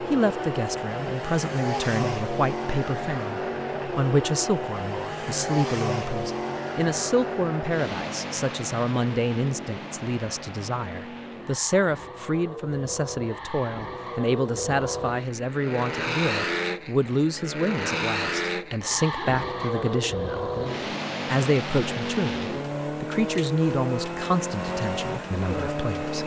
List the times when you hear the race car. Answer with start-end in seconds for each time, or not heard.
0.0-26.2.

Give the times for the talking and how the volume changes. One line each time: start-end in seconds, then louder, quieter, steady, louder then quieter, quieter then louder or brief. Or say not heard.
0.1-26.2 steady.